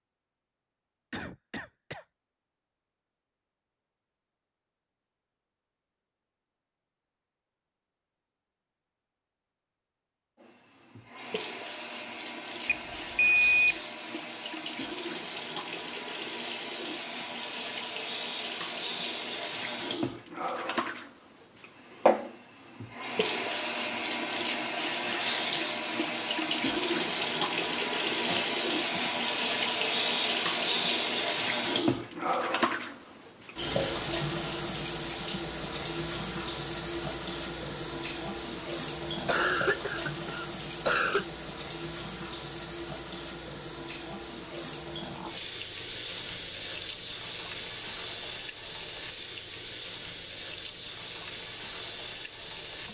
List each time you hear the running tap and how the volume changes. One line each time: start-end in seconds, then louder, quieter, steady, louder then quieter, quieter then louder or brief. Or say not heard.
10.4-52.8 louder then quieter.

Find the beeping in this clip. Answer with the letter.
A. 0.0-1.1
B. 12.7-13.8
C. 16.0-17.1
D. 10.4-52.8
B.